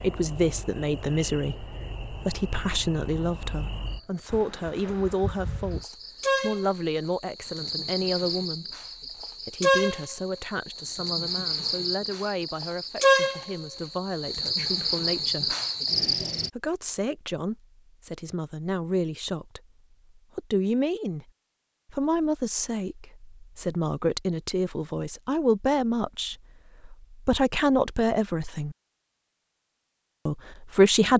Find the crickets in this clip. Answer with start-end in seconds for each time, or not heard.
0.0-16.5.